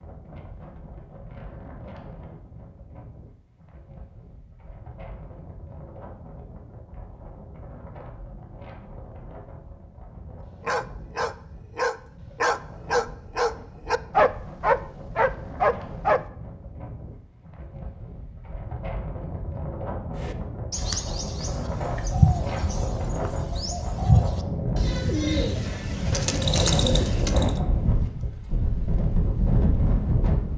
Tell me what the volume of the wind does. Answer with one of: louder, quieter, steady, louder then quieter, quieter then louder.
louder.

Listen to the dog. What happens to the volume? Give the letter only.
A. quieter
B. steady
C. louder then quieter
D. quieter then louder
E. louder
E.